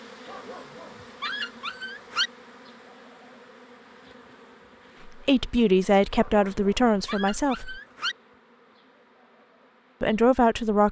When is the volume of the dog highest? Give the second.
2 s.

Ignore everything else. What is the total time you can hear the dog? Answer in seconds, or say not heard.
4 s.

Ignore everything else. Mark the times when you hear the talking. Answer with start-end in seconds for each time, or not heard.
5.0-7.8, 10.0-10.8.